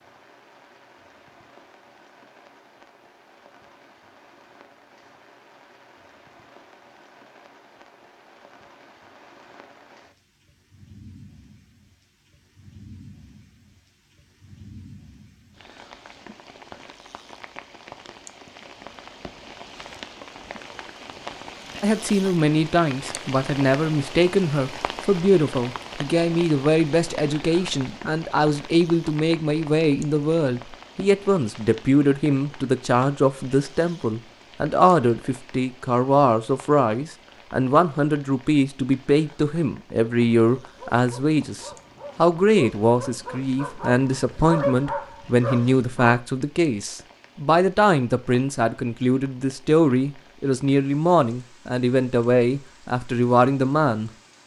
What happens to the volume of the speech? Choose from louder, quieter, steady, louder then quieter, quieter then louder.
steady.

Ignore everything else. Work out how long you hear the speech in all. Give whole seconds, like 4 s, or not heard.
32 s.